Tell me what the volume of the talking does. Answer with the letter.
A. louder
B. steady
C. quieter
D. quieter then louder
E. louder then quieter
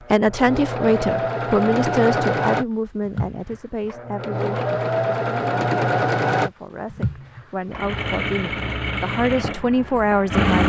D.